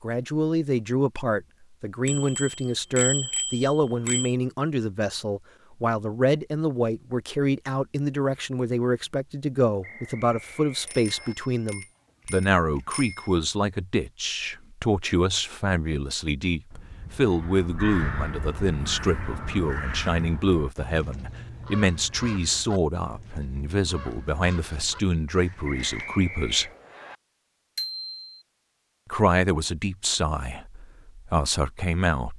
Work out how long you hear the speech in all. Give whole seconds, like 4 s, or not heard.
30 s.